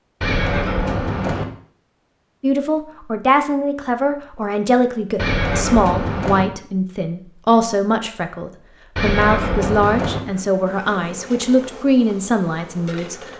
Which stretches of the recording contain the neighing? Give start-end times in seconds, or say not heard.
0.2-1.4, 5.2-6.5, 8.9-10.2.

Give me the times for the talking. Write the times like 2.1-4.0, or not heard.
2.4-13.2.